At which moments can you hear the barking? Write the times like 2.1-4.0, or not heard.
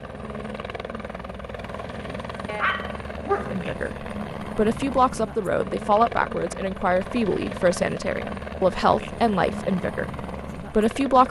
2.5-3.7.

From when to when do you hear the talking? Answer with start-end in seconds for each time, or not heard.
3.5-11.2.